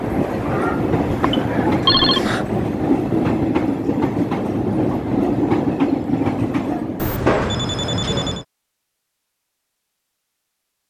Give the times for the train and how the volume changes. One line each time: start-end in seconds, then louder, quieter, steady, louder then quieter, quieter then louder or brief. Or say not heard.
0.0-7.2 steady.